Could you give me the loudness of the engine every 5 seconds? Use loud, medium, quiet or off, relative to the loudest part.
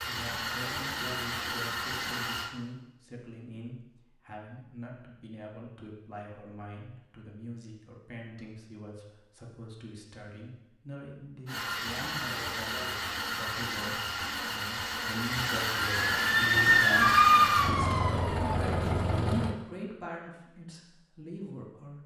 loud, off, loud, loud, off.